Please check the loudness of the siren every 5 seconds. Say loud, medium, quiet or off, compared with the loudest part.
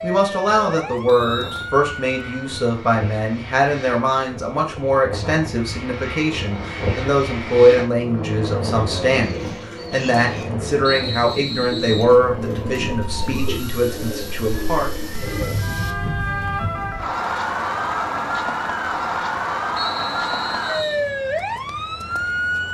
medium, off, quiet, loud, loud.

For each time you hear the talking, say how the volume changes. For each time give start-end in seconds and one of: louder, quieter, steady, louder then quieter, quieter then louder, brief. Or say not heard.
0.0-14.9 steady.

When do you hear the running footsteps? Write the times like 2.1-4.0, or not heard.
not heard.